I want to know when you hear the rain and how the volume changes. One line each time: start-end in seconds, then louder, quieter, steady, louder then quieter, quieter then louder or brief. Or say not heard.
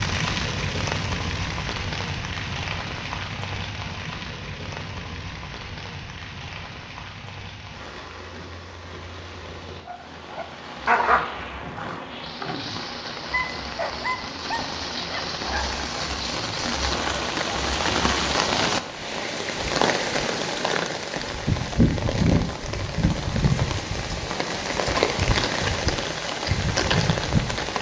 0.0-27.7 quieter then louder.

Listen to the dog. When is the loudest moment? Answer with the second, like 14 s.
11 s.